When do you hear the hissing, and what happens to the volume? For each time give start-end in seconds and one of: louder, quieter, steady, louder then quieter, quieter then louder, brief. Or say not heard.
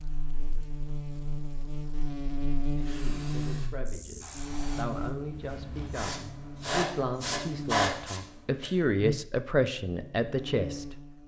2.7-8.7 louder.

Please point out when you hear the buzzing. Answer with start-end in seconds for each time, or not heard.
0.0-11.2.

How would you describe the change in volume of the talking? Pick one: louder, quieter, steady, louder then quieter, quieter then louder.
louder.